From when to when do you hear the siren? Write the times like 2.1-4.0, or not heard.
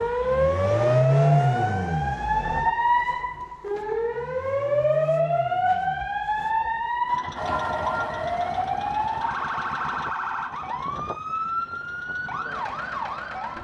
0.0-13.5.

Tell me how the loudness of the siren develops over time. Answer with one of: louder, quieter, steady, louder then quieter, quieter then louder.
quieter.